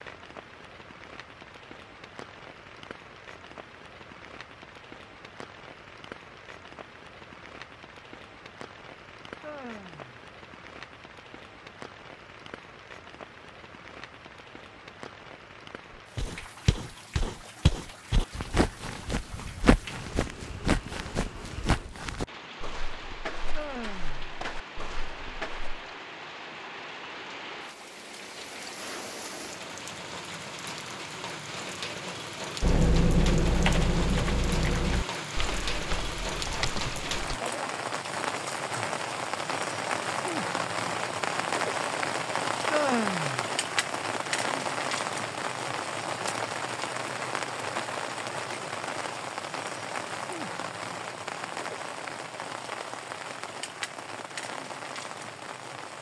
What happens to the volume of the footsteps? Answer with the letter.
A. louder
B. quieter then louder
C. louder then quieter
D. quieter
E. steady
D.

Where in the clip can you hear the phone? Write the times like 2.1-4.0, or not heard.
not heard.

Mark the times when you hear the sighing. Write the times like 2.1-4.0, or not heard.
9.3-10.2, 23.4-24.4, 42.6-43.5.